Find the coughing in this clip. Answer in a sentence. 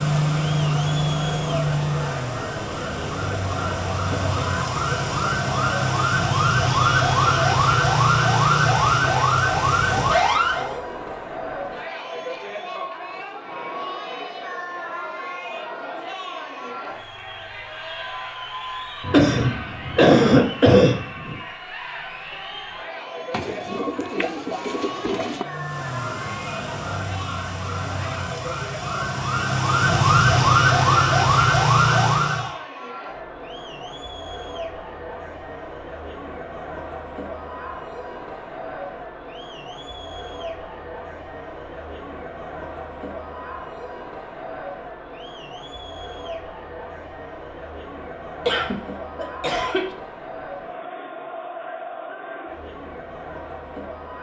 The coughing can be heard from 19.0 to 21.4 s and from 48.5 to 50.0 s.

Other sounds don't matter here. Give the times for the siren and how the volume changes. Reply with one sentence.
You can hear the siren from 0.0 to 10.8 s, getting quieter then louder; and from 25.4 to 32.5 s, getting louder.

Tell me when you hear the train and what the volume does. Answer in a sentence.
You can't hear the train here.